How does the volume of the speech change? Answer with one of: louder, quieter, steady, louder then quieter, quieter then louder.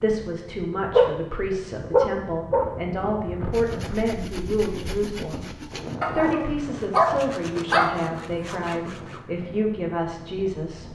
steady.